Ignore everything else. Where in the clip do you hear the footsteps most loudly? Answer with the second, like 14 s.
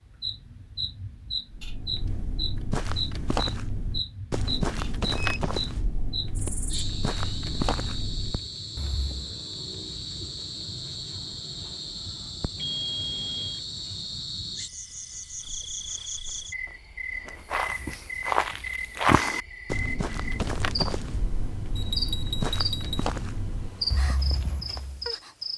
19 s.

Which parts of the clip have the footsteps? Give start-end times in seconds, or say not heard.
1.5-9.3, 17.4-25.1.